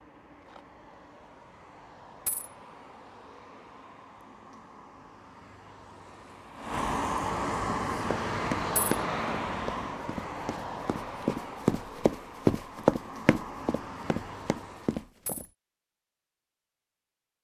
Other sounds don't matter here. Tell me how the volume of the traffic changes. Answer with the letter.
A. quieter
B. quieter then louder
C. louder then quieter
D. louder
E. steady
C.